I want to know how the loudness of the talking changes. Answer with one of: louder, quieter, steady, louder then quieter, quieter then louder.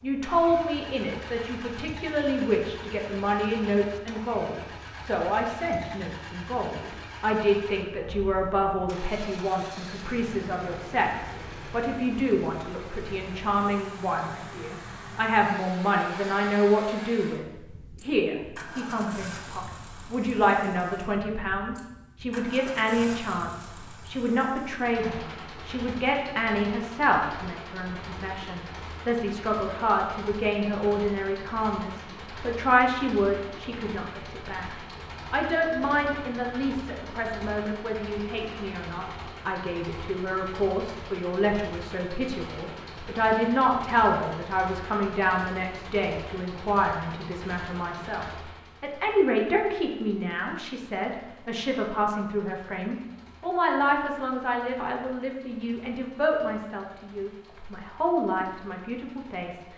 steady.